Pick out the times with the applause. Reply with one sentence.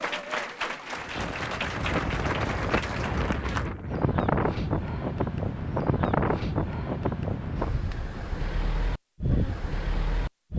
The applause can be heard from 0.0 to 3.6 s.